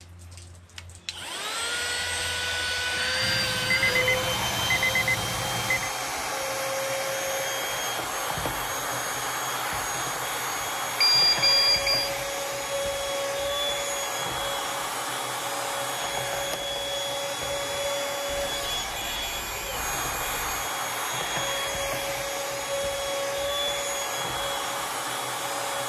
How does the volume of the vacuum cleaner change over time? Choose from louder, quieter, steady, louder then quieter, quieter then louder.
steady.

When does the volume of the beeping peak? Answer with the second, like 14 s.
11 s.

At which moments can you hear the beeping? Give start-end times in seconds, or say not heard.
3.2-5.9, 11.0-12.1, 18.4-20.6.